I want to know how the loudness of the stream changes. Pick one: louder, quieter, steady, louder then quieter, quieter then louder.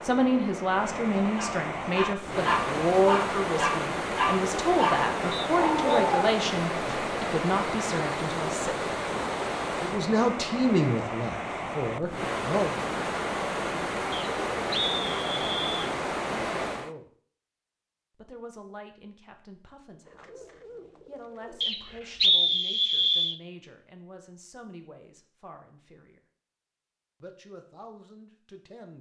steady.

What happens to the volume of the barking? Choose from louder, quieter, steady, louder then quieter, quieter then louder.
steady.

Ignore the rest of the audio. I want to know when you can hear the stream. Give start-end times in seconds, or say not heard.
0.0-16.9.